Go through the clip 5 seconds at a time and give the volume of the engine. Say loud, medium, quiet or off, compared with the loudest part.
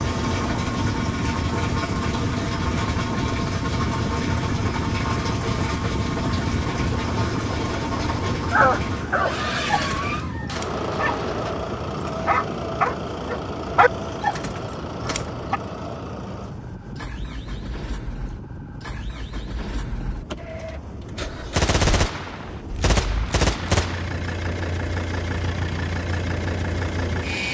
loud, loud, loud, medium, medium, loud.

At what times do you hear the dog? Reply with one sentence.
You can hear the dog from 8.5 to 15.6 s.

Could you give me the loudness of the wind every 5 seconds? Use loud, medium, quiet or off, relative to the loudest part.
loud, loud, medium, medium, medium, medium.